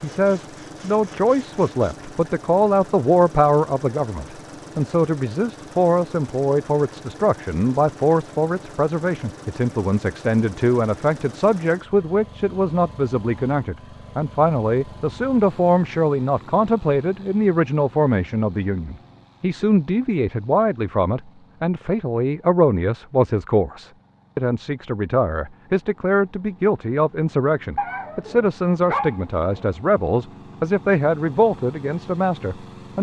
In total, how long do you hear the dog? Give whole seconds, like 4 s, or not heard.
2 s.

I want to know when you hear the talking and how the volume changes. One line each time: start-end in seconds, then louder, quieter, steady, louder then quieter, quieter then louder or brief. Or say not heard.
0.0-32.9 steady.